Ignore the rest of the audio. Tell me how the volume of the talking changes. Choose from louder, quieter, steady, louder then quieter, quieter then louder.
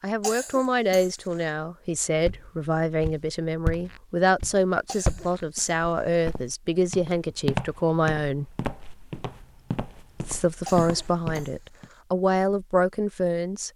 steady.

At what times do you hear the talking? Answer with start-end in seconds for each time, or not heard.
0.0-8.6, 10.2-13.7.